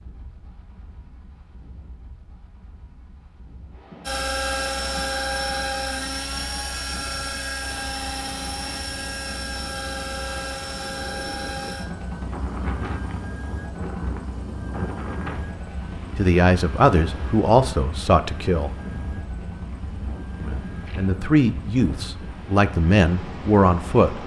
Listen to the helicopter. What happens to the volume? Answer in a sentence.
The loudness of the helicopter goes down.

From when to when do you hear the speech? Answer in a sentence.
The speech can be heard from 16.1 to 18.8 s and from 20.4 to 24.2 s.